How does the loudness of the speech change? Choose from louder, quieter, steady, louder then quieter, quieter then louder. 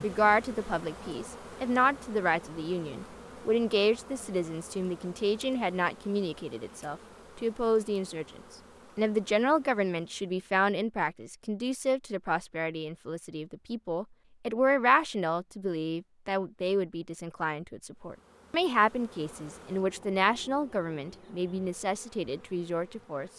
steady.